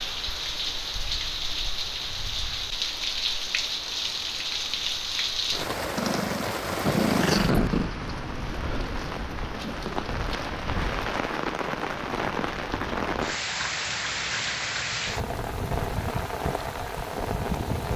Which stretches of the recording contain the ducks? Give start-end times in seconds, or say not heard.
not heard.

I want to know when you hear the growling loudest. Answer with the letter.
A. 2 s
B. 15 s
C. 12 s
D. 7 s
D.